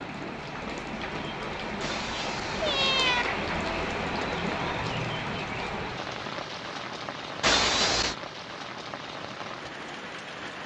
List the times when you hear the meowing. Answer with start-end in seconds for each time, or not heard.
1.8-3.2, 7.4-8.2.